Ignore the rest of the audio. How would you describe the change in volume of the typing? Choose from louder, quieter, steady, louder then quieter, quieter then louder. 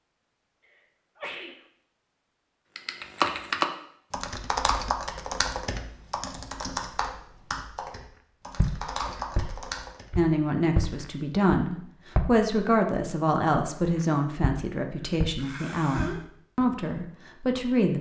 quieter.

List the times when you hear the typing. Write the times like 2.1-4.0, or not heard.
2.8-10.1.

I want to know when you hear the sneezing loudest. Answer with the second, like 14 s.
16 s.